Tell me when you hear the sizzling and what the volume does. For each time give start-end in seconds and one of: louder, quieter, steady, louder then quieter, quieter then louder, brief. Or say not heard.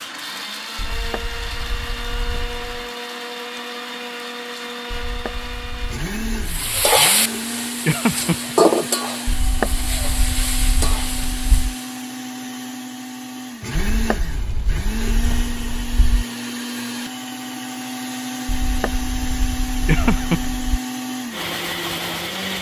6.5-11.8 quieter.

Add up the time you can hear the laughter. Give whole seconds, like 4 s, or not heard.
2 s.